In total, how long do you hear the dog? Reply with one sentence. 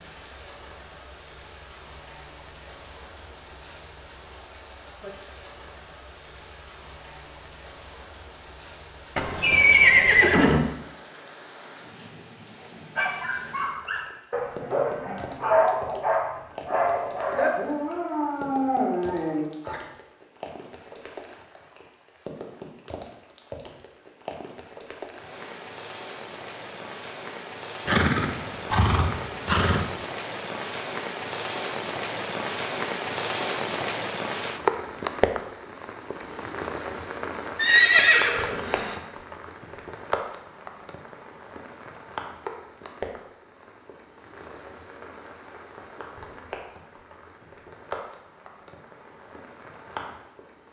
You can hear the dog for 7 seconds altogether.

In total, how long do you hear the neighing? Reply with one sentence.
You can hear the neighing for 5 seconds altogether.